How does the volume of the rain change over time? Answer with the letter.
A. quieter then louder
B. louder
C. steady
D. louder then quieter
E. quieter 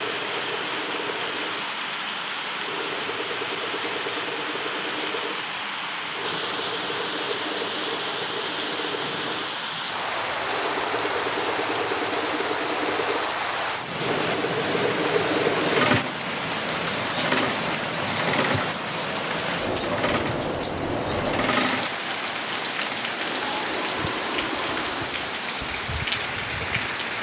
C.